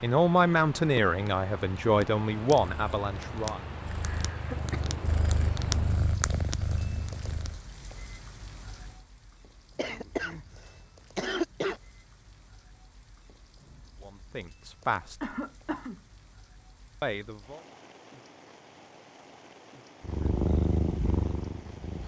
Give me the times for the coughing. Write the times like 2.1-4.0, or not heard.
4.0-4.9, 9.8-11.8, 15.2-16.0.